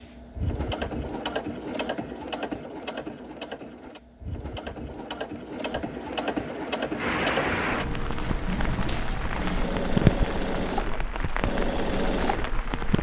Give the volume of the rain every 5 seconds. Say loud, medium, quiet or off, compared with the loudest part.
off, loud, loud.